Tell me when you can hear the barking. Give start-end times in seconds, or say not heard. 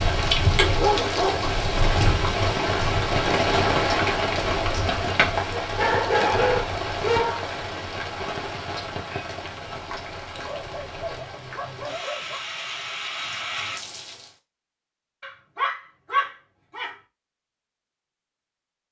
0.6-2.8, 5.5-7.5, 10.3-12.4, 15.2-16.9.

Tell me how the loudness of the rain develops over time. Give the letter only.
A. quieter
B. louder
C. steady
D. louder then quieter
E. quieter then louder
A.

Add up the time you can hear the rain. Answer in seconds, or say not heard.
14 s.